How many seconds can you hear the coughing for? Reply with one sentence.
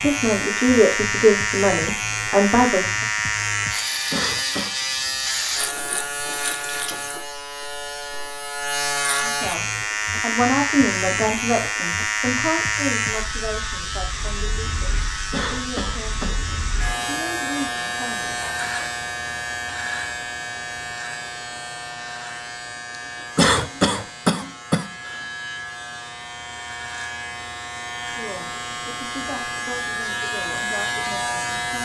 You can hear the coughing for 3 seconds altogether.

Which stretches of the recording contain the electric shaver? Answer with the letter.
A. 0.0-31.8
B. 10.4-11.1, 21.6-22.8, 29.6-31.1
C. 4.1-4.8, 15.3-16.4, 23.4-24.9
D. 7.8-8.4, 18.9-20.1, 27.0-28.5
A.